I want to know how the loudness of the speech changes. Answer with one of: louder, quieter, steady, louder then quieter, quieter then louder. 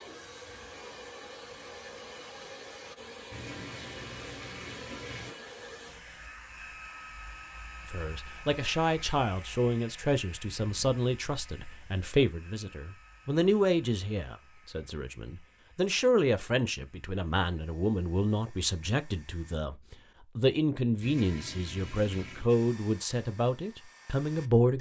steady.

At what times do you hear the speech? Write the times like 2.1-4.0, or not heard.
7.8-24.7.